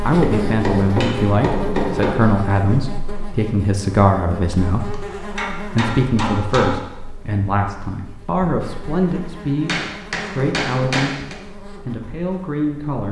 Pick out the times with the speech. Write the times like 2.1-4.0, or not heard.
0.1-13.0.